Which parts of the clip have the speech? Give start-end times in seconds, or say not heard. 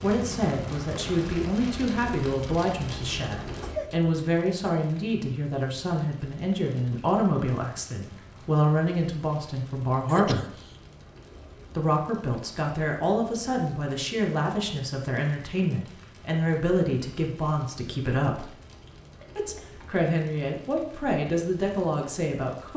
0.0-10.5, 11.8-18.4, 19.4-22.7.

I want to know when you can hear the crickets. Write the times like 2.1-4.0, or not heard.
not heard.